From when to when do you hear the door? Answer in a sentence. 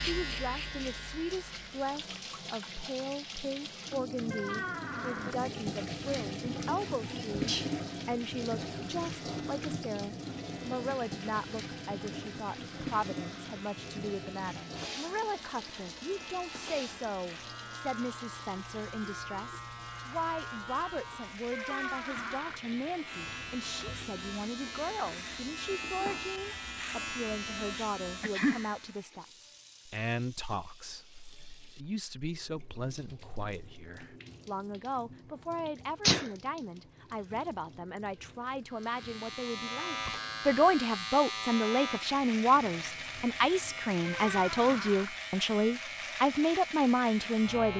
The door can be heard from 4.3 to 5.3 s, from 21.5 to 22.6 s and from 44.0 to 45.1 s.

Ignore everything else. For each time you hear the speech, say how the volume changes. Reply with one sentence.
You can hear the speech from 0.1 to 47.7 s, getting louder.